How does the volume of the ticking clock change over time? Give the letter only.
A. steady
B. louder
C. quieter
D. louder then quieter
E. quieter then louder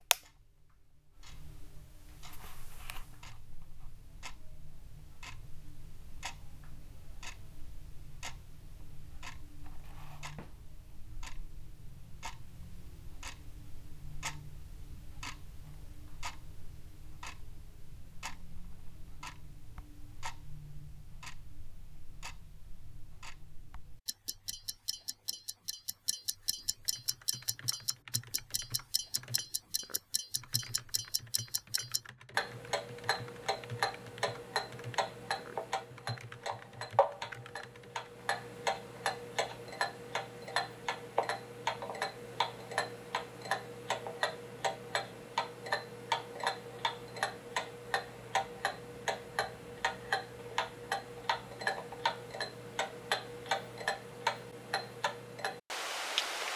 B.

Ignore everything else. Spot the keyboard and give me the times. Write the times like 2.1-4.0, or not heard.
26.8-38.1.